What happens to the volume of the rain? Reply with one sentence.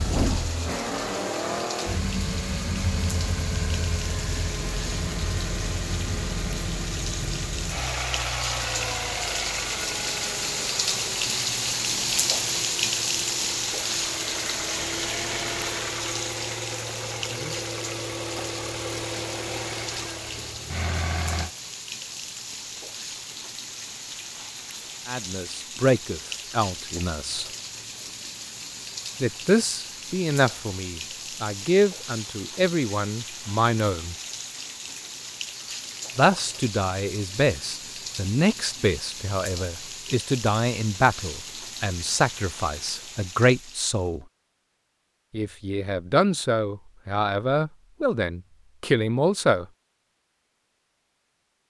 The loudness of the rain goes up, then down.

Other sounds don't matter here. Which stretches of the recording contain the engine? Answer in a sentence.
You can hear the engine from 0.0 to 21.5 s.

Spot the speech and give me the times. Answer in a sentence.
The speech can be heard from 25.1 to 27.4 s, from 29.2 to 34.1 s, from 36.1 to 44.2 s and from 45.3 to 49.6 s.